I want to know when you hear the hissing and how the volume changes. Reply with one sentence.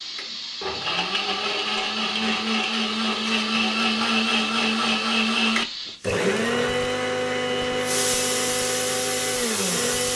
You can hear the hissing from 0.0 to 10.1 s, getting quieter then louder.